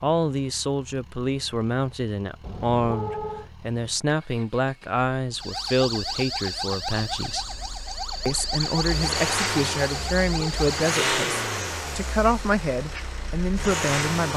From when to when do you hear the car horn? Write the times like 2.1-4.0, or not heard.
2.4-3.5, 9.9-10.6.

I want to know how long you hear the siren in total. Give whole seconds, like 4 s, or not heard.
6 s.